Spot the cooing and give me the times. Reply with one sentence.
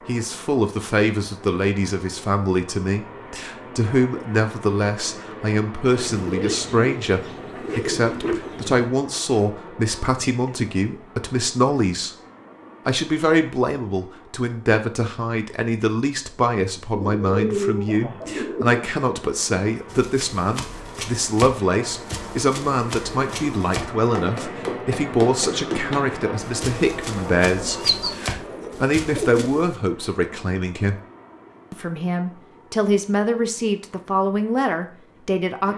The cooing can be heard from 5.9 to 8.9 s, from 16.9 to 18.9 s and from 27.6 to 29.4 s.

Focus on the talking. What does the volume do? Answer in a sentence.
The volume of the talking stays about the same.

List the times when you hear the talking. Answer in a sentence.
The talking can be heard from 0.1 to 12.1 s, from 12.8 to 31.0 s and from 31.7 to 35.7 s.